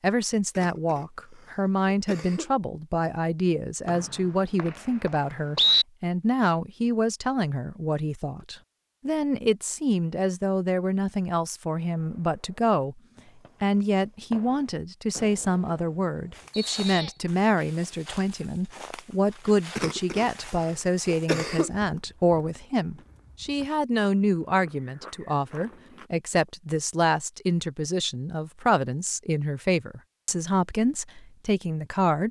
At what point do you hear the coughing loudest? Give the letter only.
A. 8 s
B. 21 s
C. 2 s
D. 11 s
B.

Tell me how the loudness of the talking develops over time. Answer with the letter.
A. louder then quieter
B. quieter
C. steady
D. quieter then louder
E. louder
C.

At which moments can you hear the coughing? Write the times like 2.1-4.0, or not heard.
0.6-2.5, 19.8-21.8.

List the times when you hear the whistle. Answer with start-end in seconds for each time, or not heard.
3.9-5.8, 16.5-17.2.